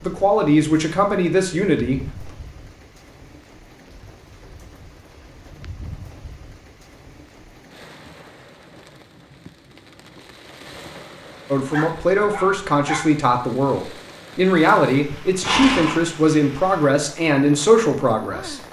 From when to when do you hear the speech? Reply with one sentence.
You can hear the speech from 0.0 to 2.2 s and from 11.5 to 18.6 s.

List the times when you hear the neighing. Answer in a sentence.
You can hear the neighing from 15.1 to 16.0 s.